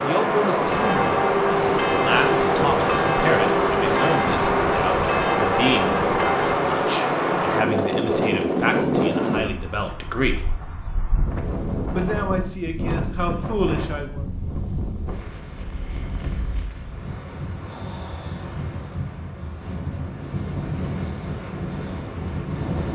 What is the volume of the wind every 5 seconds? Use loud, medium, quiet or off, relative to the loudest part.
loud, loud, medium, quiet, medium.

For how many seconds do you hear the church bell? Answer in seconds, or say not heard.
6 s.